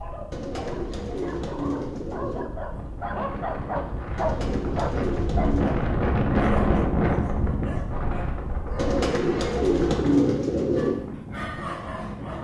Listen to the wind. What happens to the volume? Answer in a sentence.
The volume of the wind goes up, then down.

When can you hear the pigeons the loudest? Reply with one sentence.
The loudest moment of the pigeons is at 10 seconds.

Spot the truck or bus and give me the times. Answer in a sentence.
The truck or bus can't be heard in this clip.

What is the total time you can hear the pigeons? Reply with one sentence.
You can hear the pigeons for 6 seconds altogether.